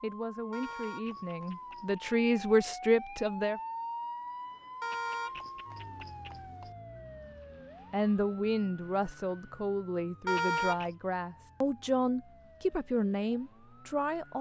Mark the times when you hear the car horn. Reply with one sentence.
The car horn can be heard from 0.5 to 2.0 s, from 4.8 to 6.7 s and from 10.2 to 10.9 s.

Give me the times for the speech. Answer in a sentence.
You can hear the speech from 0.0 to 3.6 s and from 7.9 to 14.3 s.